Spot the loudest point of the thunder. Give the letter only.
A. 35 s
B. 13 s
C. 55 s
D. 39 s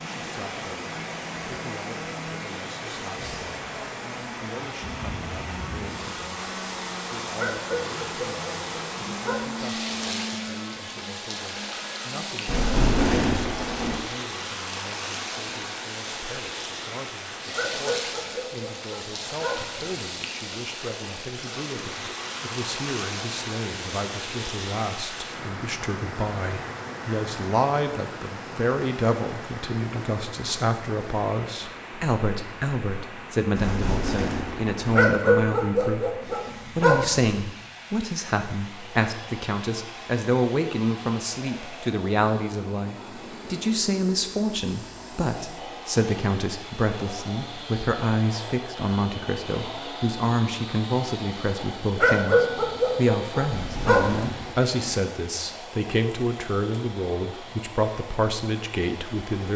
B.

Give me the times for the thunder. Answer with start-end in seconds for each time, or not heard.
12.4-14.0, 33.5-35.0, 53.5-55.0.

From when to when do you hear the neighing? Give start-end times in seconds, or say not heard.
not heard.